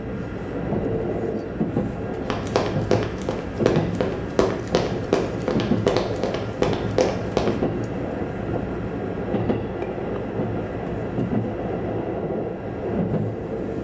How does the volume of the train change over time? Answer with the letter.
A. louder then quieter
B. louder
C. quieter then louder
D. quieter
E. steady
E.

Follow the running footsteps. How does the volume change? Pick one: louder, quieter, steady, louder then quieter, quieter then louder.
steady.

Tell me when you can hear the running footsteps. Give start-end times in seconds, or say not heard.
2.2-7.5.